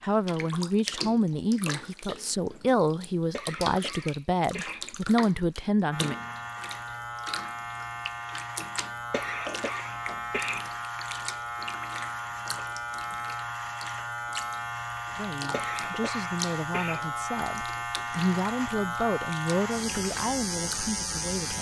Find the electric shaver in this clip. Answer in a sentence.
The electric shaver can be heard from 5.9 to 21.5 s.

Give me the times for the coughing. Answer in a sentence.
The coughing can be heard from 3.3 to 4.8 s, from 9.1 to 10.7 s and from 15.5 to 17.0 s.